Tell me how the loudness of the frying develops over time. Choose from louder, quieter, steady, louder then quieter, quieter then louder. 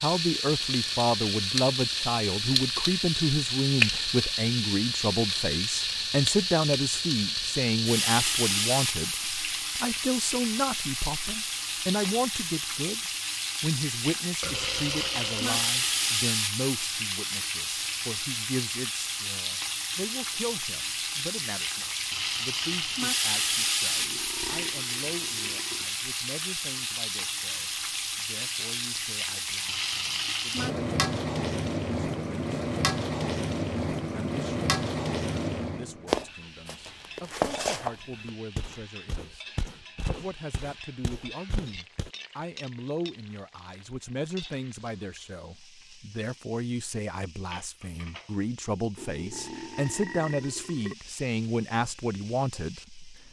quieter.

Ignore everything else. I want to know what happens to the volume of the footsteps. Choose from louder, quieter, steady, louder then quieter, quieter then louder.
quieter.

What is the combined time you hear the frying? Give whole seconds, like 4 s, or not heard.
53 s.